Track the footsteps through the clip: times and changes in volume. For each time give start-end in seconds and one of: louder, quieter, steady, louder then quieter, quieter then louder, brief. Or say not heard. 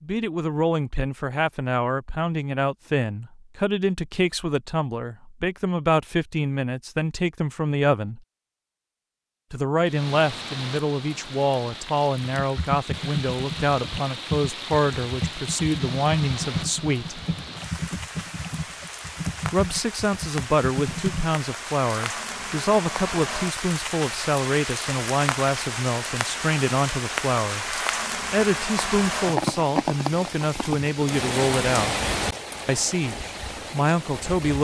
not heard.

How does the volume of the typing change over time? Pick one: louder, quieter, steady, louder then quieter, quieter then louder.
steady.